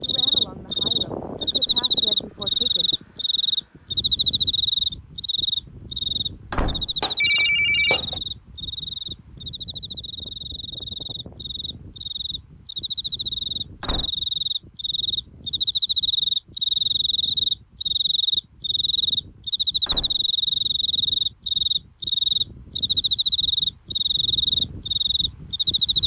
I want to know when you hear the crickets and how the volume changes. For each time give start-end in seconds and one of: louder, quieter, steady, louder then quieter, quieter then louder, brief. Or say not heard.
0.0-26.0 quieter then louder.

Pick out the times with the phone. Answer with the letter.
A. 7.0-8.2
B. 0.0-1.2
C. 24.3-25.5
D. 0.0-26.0
A.